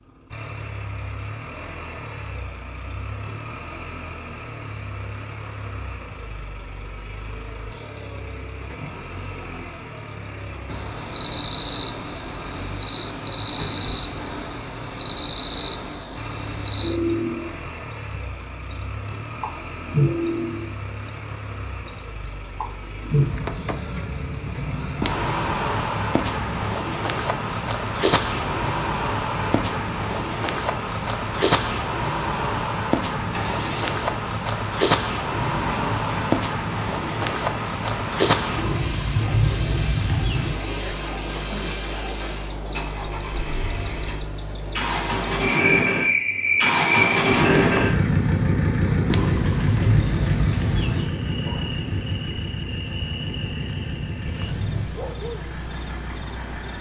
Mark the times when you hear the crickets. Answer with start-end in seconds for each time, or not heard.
10.7-56.7.